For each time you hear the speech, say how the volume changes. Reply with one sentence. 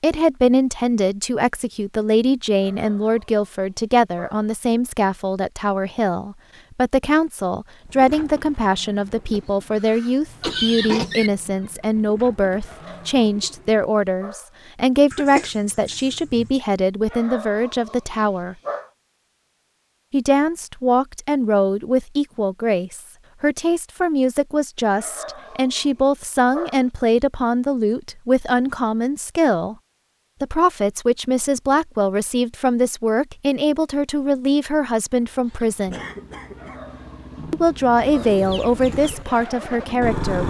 You can hear the speech from 0.0 to 18.6 s, at a steady volume; from 20.1 to 29.8 s, at a steady volume; from 30.4 to 36.0 s, at a steady volume; and briefly from 37.5 to 40.4 s.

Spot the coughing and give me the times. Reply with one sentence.
The coughing can be heard from 9.3 to 11.3 s, from 15.1 to 16.5 s and from 35.9 to 36.9 s.